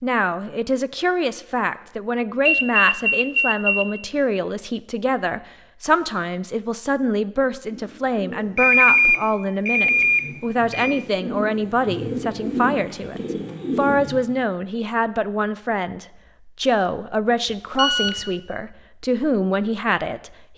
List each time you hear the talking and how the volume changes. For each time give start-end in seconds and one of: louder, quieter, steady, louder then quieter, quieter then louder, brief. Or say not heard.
0.0-20.3 steady.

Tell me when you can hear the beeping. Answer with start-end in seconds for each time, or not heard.
2.5-3.9, 8.6-11.0, 17.7-18.2.